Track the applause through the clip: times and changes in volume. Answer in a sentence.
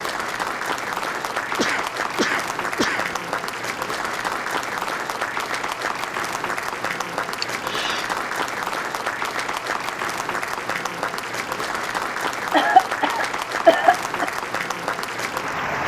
The applause can be heard from 0.0 to 15.8 s, at a steady volume.